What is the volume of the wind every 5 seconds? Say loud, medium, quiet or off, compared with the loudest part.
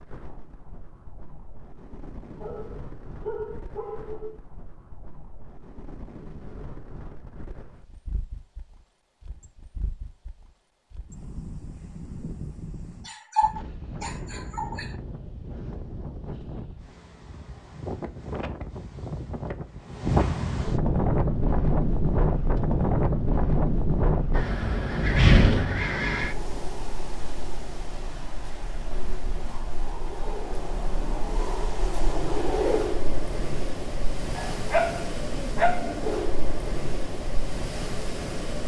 quiet, quiet, quiet, quiet, loud, loud, medium, medium.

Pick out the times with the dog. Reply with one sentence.
You can hear the dog from 2.4 to 4.3 s, from 13.1 to 14.9 s and from 34.4 to 36.0 s.